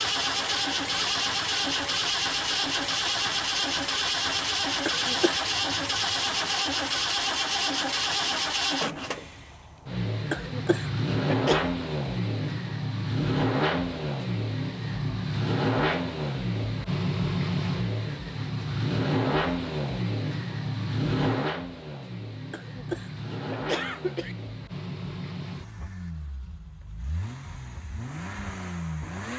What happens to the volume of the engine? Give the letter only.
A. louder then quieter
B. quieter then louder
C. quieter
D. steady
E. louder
C.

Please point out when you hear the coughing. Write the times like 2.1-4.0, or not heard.
4.8-5.5, 10.3-11.7, 22.5-24.4.